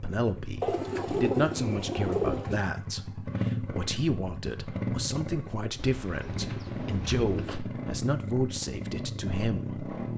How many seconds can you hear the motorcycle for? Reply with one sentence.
The motorcycle can be heard for 10 seconds in total.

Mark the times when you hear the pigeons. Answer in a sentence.
You can hear the pigeons from 0.6 to 2.6 s and from 5.8 to 7.7 s.